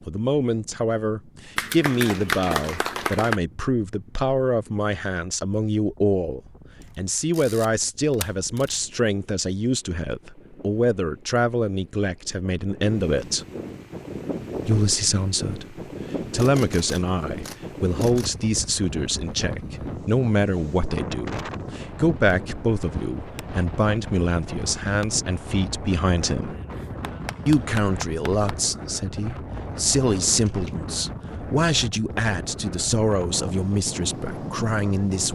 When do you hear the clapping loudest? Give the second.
2 s.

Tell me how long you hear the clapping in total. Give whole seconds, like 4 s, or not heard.
4 s.